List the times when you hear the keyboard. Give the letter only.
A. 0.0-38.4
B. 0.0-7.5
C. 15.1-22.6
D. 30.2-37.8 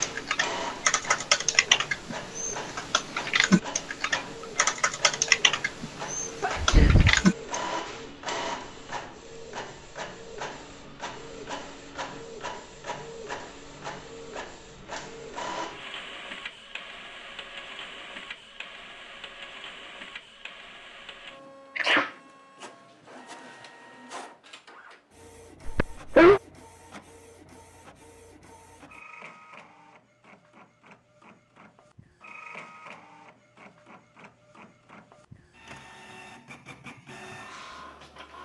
B.